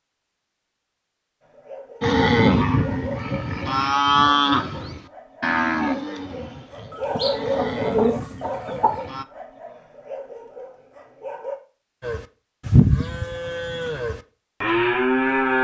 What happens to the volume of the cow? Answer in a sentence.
The volume of the cow goes down, then up.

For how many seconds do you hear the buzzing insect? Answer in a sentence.
You can't hear the buzzing insect here.